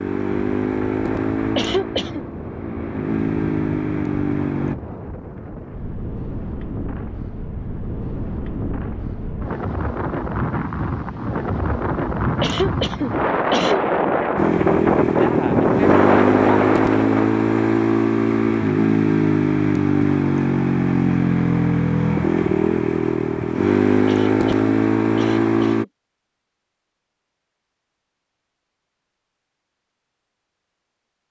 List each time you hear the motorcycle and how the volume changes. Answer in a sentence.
The motorcycle can be heard from 0.0 to 4.8 s, getting quieter then louder; and from 14.3 to 25.9 s, at a steady volume.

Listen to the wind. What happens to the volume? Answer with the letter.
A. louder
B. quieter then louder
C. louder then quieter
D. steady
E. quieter
A.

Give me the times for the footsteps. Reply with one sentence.
The footsteps can't be heard in this clip.